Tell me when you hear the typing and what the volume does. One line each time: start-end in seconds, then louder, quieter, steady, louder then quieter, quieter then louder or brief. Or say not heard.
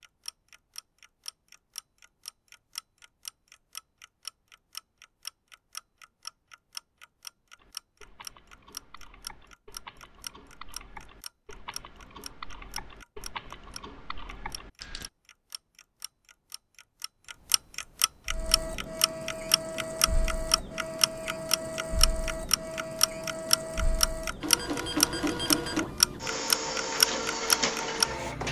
7.5-15.1 louder.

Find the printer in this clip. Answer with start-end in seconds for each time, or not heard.
18.2-28.4.